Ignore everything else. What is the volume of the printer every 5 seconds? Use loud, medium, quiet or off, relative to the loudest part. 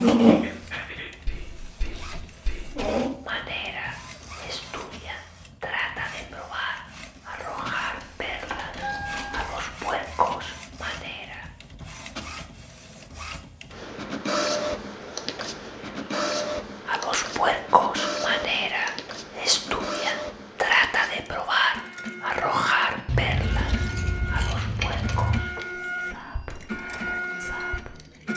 loud, quiet, medium, medium, medium, medium.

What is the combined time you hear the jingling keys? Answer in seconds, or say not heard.
5 s.